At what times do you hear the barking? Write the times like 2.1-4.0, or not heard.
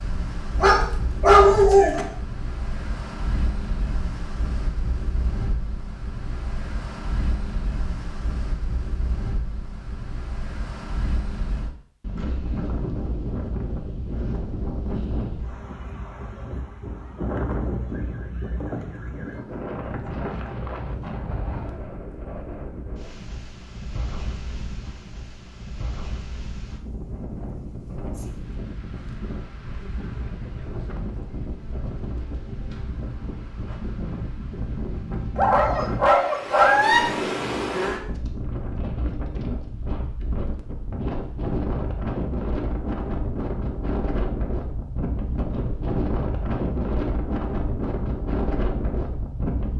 0.6-2.0, 35.4-37.0.